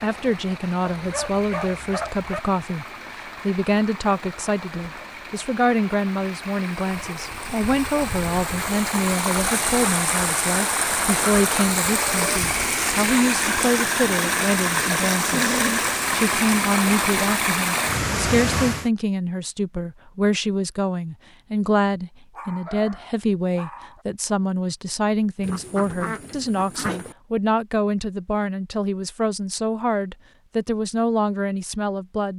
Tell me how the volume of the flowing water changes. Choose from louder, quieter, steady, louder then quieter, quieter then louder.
louder.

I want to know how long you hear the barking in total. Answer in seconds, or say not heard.
4 s.